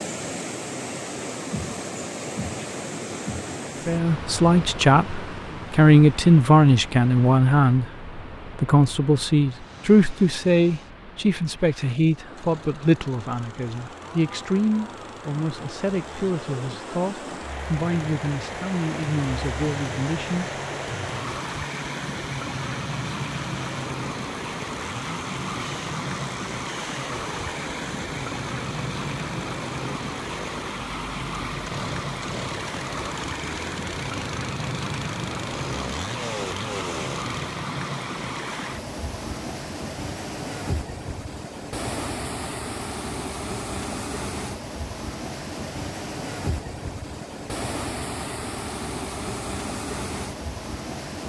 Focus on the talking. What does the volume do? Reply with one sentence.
The loudness of the talking goes down.